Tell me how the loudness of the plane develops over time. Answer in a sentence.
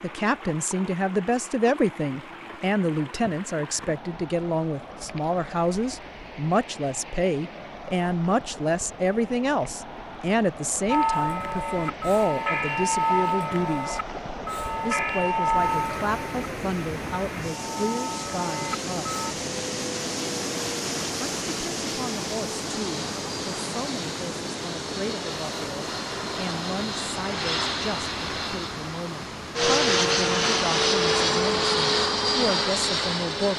The loudness of the plane goes up.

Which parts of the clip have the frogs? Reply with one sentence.
The frogs can't be heard in this clip.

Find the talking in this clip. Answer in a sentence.
The talking can be heard from 0.0 to 14.0 s, from 14.8 to 19.1 s and from 21.2 to 33.5 s.